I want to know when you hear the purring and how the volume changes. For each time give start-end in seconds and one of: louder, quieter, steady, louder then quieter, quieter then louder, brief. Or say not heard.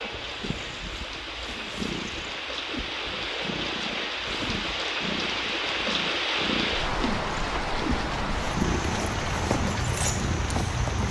0.0-11.0 louder.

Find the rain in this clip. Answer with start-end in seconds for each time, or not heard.
0.0-11.0.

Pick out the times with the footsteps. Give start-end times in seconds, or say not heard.
8.3-11.0.